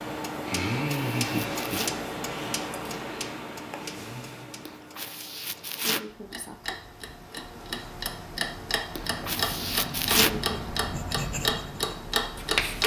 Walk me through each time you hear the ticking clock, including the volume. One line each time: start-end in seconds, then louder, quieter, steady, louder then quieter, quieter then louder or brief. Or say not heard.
0.0-12.8 quieter then louder.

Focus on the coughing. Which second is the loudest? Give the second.
10 s.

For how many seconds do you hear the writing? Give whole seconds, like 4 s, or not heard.
3 s.